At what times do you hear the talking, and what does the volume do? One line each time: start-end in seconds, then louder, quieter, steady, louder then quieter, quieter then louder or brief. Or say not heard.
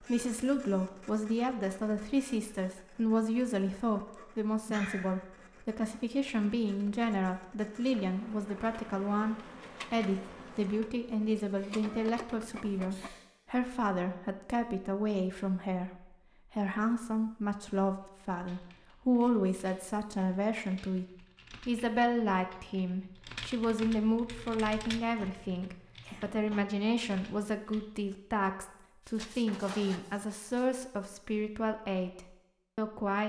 0.0-33.2 steady.